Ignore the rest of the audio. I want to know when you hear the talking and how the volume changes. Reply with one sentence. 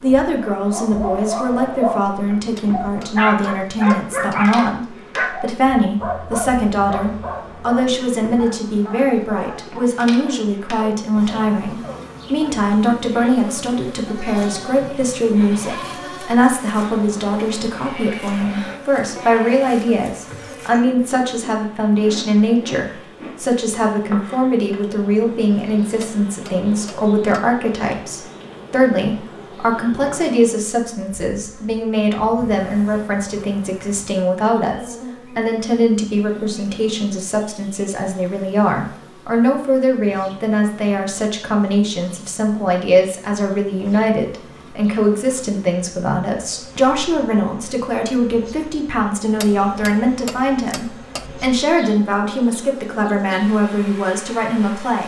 The talking can be heard from 0.0 to 55.0 s, at a steady volume.